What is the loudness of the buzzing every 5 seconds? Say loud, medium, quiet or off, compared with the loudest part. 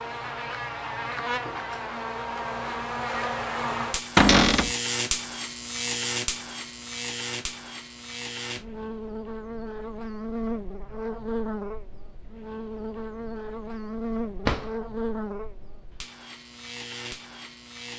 loud, loud, loud, medium.